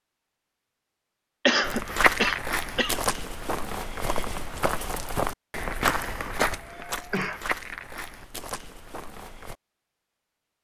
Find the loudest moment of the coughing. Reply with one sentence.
The volume of the coughing peaks at 2 seconds.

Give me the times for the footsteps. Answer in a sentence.
The footsteps can be heard from 1.6 to 9.6 s.